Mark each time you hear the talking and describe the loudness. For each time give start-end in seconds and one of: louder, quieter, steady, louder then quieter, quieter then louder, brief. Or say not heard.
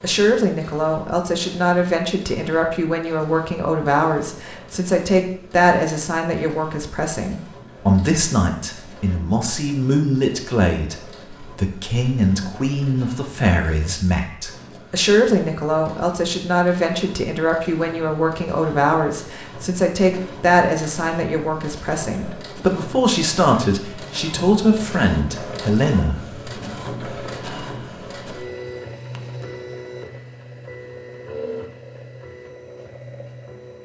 0.0-26.3 steady.